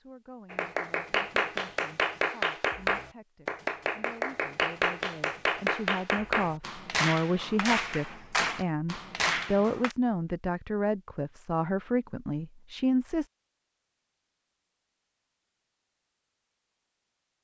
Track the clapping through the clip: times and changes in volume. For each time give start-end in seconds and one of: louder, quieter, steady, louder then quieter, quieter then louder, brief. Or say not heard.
0.5-9.9 steady.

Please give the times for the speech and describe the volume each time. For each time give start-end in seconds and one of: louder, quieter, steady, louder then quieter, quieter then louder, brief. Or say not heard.
0.0-13.3 louder.